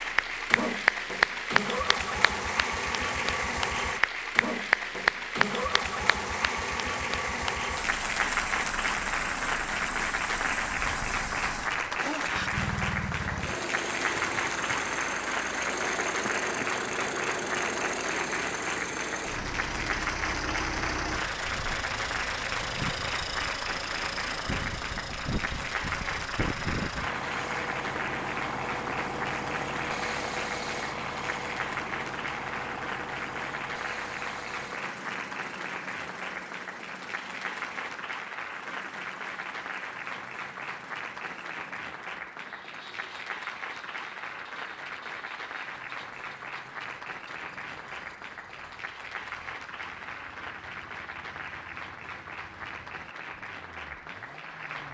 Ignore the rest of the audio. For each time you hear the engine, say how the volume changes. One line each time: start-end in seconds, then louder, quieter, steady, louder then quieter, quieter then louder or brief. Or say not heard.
0.0-54.8 quieter.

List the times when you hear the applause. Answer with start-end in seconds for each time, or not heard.
0.0-54.8.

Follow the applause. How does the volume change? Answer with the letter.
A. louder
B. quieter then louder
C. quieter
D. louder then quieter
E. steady
C.